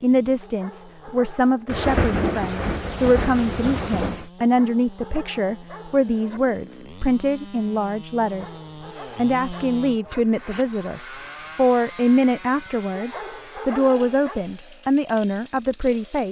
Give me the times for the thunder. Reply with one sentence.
You can hear the thunder from 1.6 to 4.2 s.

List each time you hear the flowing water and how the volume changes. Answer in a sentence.
You can't hear the flowing water here.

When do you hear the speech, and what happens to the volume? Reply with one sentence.
You can hear the speech from 0.0 to 8.6 s, at a steady volume; and from 9.2 to 16.2 s, at a steady volume.